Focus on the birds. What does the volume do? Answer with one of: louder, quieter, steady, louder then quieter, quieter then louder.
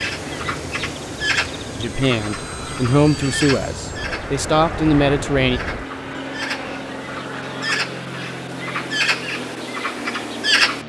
quieter then louder.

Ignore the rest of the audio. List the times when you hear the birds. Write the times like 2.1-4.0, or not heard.
0.0-10.8.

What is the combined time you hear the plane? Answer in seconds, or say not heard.
11 s.